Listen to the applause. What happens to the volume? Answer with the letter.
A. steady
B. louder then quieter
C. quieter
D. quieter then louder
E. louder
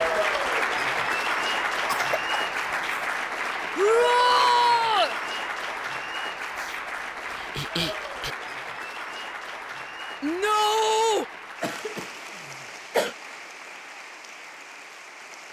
C.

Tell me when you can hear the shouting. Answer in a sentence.
You can hear the shouting from 3.8 to 5.2 s and from 10.2 to 11.2 s.